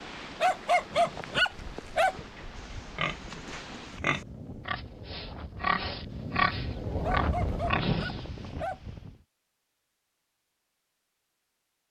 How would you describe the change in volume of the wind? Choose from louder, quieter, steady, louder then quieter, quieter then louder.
louder.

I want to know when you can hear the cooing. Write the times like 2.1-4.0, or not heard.
not heard.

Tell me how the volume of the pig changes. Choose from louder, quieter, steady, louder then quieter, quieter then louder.
louder.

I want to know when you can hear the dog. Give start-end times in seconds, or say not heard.
0.4-2.1, 7.0-8.8.